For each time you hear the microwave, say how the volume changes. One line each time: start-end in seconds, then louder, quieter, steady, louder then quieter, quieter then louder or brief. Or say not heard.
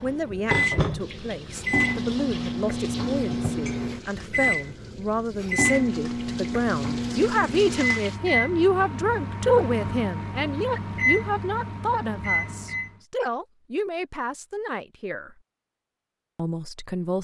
0.0-12.9 steady.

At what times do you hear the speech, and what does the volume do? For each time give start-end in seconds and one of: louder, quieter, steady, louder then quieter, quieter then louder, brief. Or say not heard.
0.0-15.3 louder then quieter
16.4-17.1 brief.